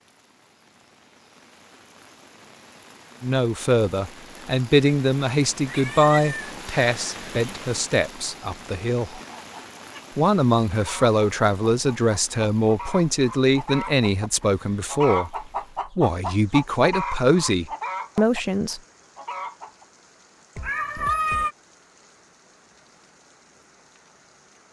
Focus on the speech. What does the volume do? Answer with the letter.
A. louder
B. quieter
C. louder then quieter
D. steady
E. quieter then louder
D.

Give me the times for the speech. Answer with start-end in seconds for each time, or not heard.
3.2-9.2, 10.2-18.8.